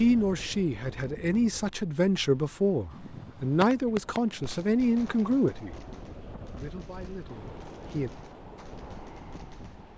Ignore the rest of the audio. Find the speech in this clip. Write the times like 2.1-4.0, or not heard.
0.0-5.8, 6.5-8.1.